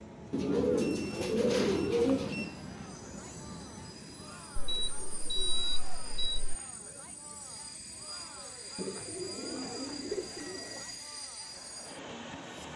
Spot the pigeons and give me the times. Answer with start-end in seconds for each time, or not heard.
0.3-2.5, 4.5-6.5, 8.8-10.8.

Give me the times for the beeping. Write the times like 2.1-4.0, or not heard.
0.8-2.6, 4.7-6.4, 9.1-11.1.